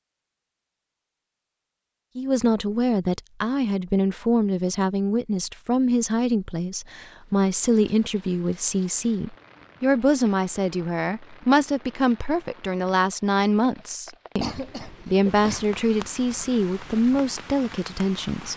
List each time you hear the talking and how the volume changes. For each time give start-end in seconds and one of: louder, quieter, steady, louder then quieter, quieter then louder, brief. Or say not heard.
2.1-18.5 steady.